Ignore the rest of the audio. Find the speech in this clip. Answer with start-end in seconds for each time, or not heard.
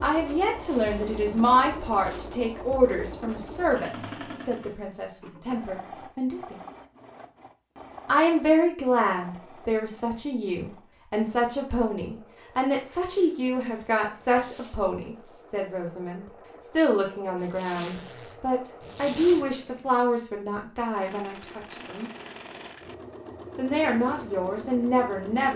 0.0-6.5, 8.1-22.1, 23.6-25.5.